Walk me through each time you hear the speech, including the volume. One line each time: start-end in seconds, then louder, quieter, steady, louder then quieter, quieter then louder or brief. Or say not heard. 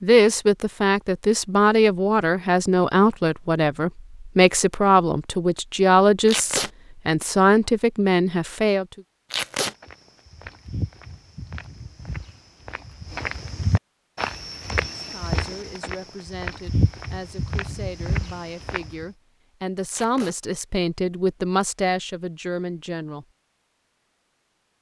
0.0-9.0 steady
14.9-23.2 louder.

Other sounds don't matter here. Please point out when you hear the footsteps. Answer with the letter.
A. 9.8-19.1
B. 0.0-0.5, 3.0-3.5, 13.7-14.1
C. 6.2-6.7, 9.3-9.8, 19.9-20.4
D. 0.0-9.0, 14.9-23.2
A.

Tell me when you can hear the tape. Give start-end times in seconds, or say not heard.
6.2-6.7, 9.3-9.8, 19.9-20.4.